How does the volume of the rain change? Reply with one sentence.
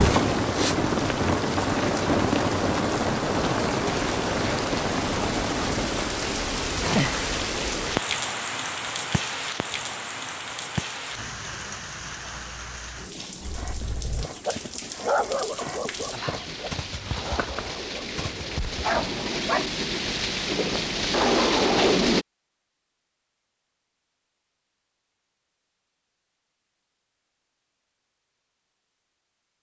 The volume of the rain goes down, then up.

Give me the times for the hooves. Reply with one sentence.
The hooves can be heard from 13.2 to 19.5 s.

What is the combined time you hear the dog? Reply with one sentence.
You can hear the dog for 6 seconds altogether.